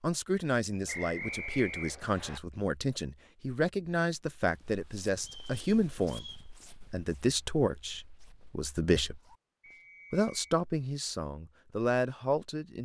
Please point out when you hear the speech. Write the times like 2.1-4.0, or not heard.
0.0-9.2, 10.1-12.8.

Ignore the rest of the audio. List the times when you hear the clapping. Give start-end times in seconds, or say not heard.
not heard.